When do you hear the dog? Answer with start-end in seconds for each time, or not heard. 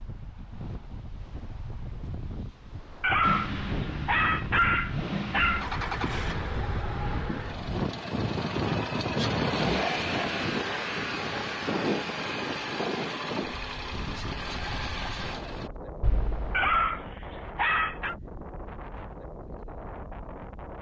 3.0-5.7, 16.5-18.1.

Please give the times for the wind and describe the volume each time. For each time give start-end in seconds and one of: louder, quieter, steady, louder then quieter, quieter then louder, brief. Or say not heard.
0.0-20.7 louder then quieter.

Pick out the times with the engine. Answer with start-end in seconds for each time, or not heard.
3.2-15.7.